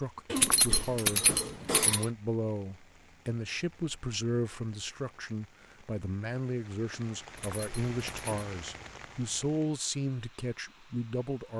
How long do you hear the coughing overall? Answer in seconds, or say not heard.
2 s.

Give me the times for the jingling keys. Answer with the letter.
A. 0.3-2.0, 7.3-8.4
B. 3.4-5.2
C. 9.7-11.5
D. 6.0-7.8
A.